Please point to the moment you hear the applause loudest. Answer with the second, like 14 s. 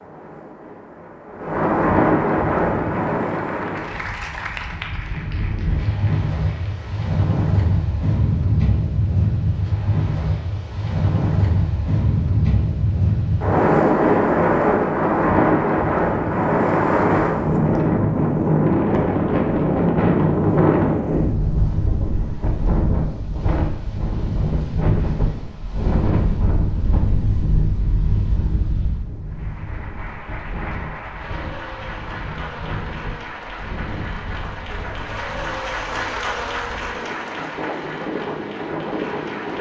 36 s.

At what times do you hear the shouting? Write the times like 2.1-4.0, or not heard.
not heard.